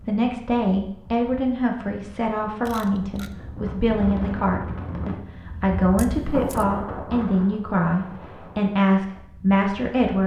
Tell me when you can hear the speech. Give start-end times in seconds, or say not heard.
0.1-10.2.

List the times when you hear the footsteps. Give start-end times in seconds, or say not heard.
not heard.